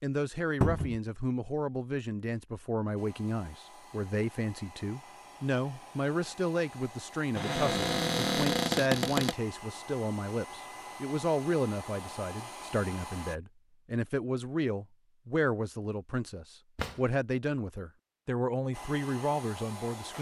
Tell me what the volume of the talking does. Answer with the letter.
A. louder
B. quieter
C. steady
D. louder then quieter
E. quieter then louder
C.